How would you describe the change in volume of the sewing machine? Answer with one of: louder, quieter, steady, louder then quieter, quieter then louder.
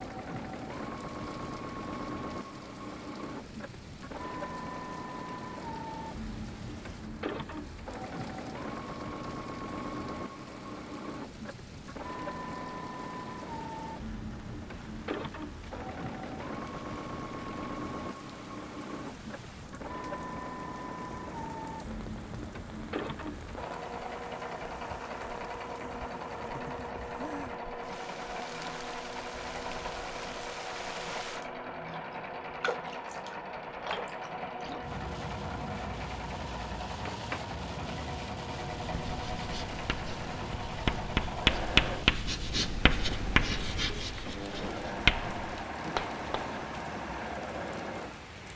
steady.